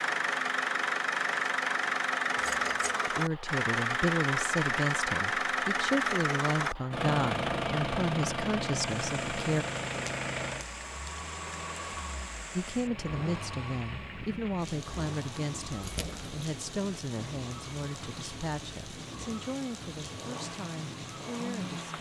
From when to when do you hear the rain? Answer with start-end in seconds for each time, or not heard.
8.8-21.9.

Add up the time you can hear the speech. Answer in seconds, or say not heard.
16 s.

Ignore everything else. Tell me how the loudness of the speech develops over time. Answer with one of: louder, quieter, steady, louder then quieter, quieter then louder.
quieter.